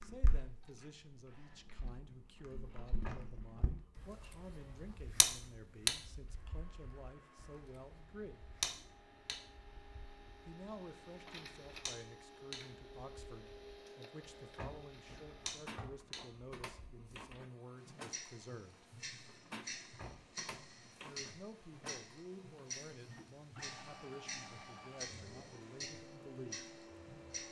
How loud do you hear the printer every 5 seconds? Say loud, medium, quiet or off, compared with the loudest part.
quiet, medium, loud, loud, loud, loud.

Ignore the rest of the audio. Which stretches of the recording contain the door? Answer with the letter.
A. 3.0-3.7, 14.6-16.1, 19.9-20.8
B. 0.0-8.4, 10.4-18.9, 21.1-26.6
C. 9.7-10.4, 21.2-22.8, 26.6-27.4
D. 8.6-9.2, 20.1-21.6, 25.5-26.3
A.